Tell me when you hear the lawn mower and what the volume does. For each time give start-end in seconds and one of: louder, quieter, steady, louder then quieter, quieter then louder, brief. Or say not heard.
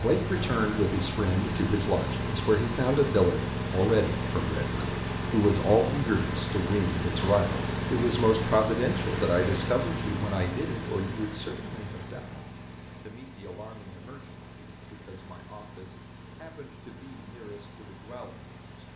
0.0-18.9 quieter.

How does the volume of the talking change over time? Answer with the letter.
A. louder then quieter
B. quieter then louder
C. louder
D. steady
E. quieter
E.